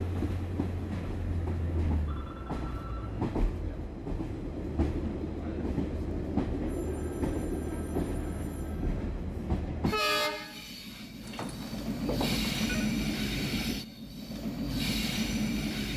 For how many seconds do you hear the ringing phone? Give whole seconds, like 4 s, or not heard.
6 s.